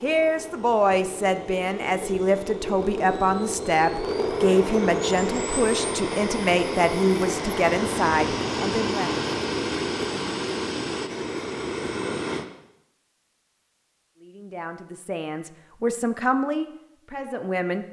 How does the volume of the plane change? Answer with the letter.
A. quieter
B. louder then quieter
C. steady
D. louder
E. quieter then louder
D.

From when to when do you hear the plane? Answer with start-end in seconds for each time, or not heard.
0.0-12.4.